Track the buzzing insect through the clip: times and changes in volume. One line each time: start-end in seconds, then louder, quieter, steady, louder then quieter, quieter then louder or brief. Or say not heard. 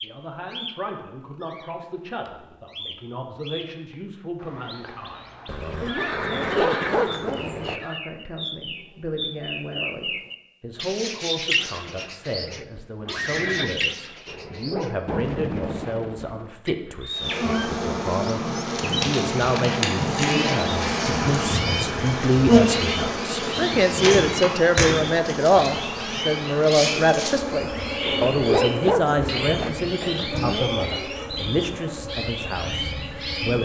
17.1-33.5 quieter.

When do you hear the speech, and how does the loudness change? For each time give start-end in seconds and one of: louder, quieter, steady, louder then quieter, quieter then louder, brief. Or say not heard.
0.0-33.5 louder.